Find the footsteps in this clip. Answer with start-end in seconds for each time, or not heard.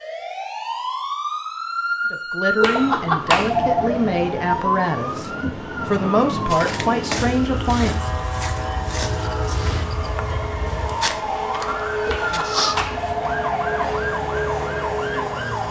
6.5-12.9.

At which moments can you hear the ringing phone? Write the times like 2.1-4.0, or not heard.
2.6-3.9, 12.1-13.9.